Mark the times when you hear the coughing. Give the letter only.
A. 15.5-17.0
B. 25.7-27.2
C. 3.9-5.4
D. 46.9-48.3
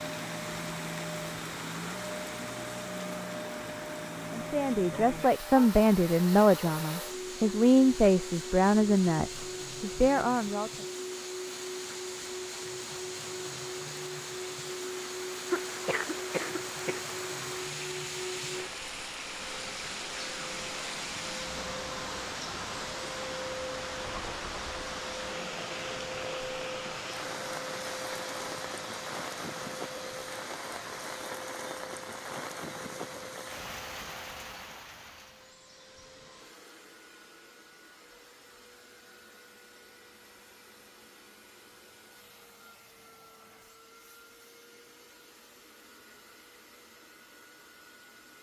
A.